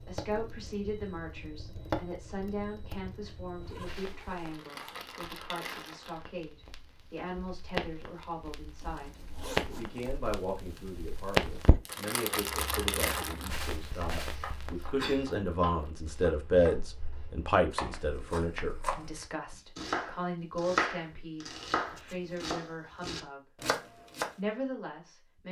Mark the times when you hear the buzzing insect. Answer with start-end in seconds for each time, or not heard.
not heard.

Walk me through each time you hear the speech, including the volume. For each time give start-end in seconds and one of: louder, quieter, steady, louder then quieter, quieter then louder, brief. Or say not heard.
0.1-23.4 louder then quieter
24.4-25.4 brief.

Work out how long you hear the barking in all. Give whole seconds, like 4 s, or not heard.
not heard.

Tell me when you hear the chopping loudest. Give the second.
21 s.